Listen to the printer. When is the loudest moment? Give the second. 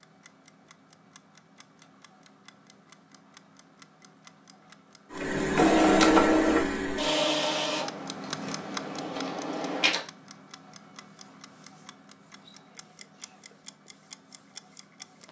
6 s.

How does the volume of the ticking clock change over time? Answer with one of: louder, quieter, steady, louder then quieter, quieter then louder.
louder then quieter.